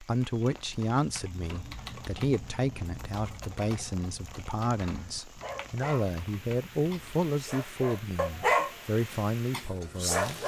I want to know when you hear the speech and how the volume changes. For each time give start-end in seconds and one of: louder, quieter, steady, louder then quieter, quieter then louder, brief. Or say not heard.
0.0-10.4 steady.